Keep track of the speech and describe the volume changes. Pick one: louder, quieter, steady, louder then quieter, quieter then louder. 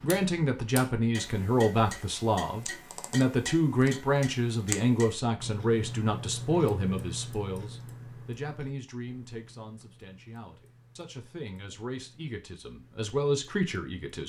quieter then louder.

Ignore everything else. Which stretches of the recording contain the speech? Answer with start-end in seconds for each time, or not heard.
0.0-14.2.